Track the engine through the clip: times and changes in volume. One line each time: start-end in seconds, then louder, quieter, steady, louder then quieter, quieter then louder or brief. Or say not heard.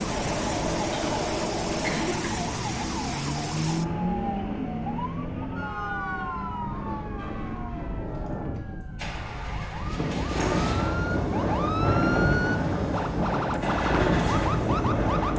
0.0-15.3 quieter then louder.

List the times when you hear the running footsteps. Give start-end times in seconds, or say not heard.
not heard.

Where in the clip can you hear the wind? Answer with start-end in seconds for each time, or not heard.
0.0-15.3.